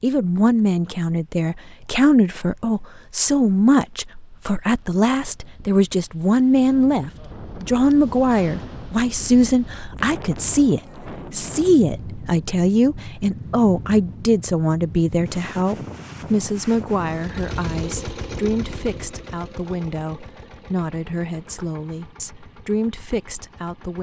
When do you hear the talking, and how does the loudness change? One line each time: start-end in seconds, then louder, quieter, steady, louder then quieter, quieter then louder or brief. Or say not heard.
0.0-23.9 quieter.